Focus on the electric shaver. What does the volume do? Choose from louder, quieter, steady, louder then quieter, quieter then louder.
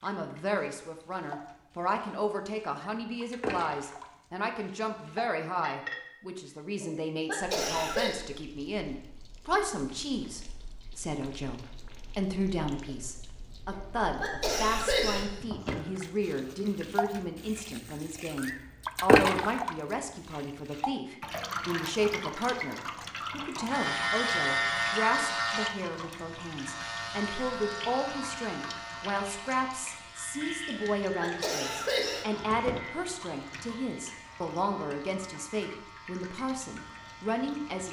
quieter.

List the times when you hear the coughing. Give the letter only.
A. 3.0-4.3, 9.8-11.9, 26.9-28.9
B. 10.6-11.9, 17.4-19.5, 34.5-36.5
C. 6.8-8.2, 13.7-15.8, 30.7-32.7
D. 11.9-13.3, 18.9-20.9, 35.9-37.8
C.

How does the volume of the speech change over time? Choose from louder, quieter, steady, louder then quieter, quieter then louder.
steady.